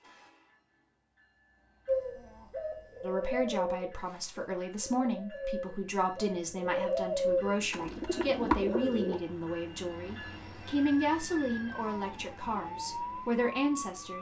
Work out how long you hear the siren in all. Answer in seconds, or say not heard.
3 s.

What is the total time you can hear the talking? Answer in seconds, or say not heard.
11 s.